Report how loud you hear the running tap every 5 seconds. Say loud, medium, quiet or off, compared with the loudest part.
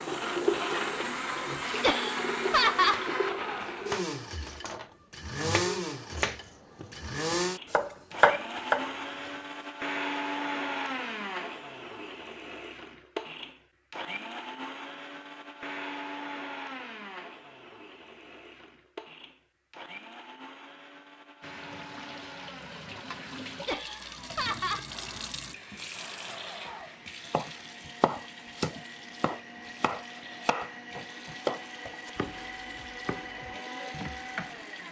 loud, off, off, off, medium, medium, quiet.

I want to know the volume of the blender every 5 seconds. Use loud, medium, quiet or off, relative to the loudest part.
loud, loud, loud, medium, quiet, quiet, medium.